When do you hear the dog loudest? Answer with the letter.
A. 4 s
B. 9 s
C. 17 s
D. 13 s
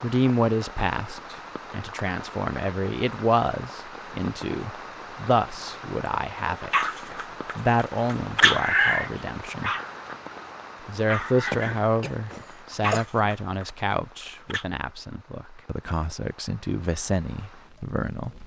B.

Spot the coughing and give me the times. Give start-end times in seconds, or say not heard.
11.4-13.1.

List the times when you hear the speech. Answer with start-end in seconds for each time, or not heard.
0.0-6.9, 7.5-9.7, 10.8-18.4.